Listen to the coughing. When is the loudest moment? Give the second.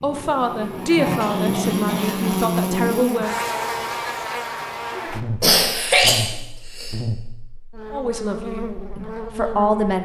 6 s.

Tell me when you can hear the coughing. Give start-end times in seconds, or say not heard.
1.2-2.4, 5.4-7.0.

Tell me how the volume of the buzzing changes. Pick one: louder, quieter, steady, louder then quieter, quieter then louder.
quieter.